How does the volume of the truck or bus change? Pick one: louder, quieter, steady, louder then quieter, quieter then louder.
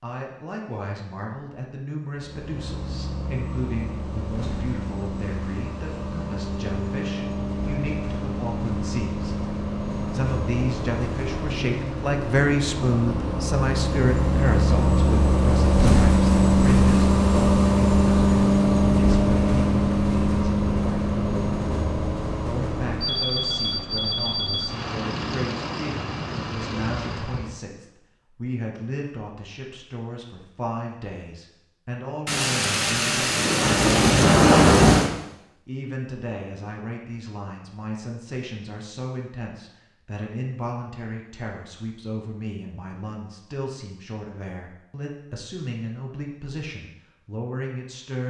louder then quieter.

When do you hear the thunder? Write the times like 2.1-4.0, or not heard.
32.2-35.1.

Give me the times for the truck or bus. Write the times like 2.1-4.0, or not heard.
2.1-27.6.